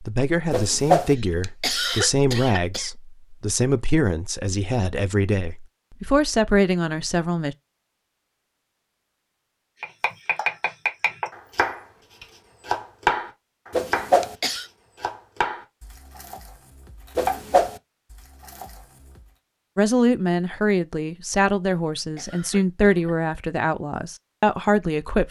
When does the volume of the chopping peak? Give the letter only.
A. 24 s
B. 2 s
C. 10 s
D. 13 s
D.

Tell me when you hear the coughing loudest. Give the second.
2 s.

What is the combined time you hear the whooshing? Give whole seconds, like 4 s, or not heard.
2 s.